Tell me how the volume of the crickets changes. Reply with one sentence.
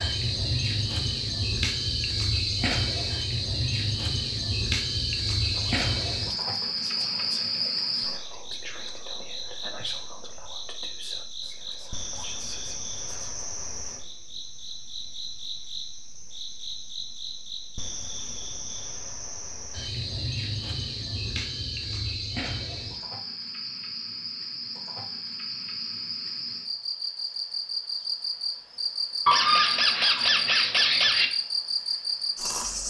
The volume of the crickets goes down, then up.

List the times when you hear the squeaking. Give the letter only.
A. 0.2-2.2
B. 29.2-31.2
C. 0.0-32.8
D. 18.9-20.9
B.